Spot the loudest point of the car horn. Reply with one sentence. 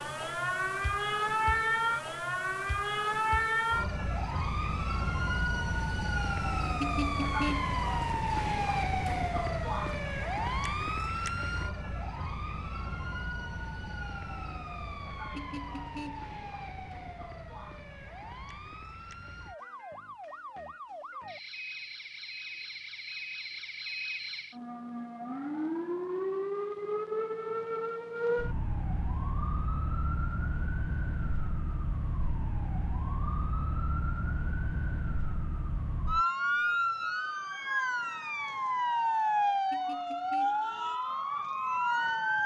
The volume of the car horn peaks at 7 seconds.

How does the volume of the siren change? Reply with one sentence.
The loudness of the siren goes down, then up.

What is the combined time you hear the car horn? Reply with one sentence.
You can hear the car horn for 3 seconds altogether.